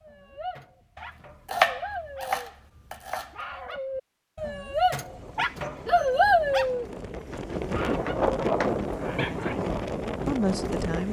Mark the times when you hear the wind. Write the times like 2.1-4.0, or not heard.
5.0-11.0.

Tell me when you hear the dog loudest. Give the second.
6 s.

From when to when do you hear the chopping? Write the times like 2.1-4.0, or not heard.
0.9-3.4, 7.3-8.8.